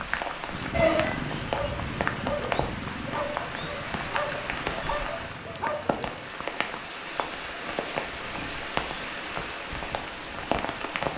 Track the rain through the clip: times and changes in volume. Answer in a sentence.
You can hear the rain from 0.0 to 11.1 s, at a steady volume.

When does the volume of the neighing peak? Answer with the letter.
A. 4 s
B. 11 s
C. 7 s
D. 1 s
D.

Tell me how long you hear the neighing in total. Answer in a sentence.
The neighing can be heard for 2 seconds in total.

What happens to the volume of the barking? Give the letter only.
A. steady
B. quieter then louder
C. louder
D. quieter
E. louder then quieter
A.